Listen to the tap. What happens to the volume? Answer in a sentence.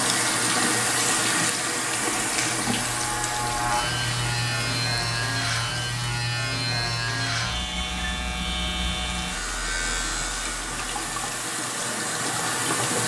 The volume of the tap goes down, then up.